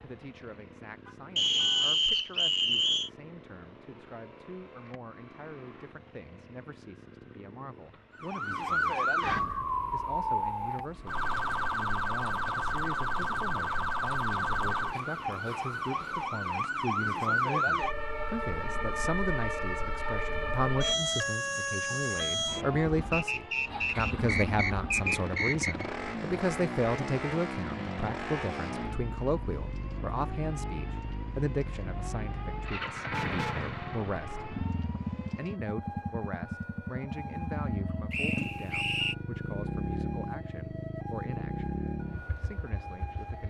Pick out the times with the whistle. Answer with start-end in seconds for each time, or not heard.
1.4-3.1, 23.1-25.9, 38.1-39.1.